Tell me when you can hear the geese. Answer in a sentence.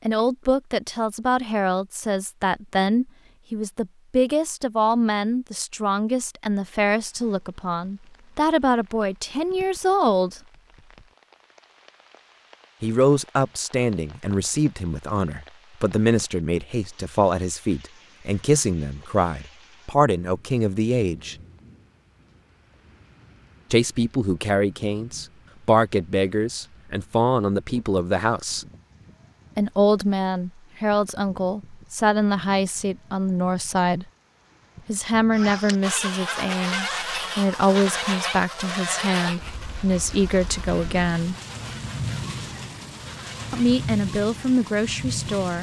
The geese can be heard from 35.3 to 43.8 s.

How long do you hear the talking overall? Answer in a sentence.
You can hear the talking for 37 seconds altogether.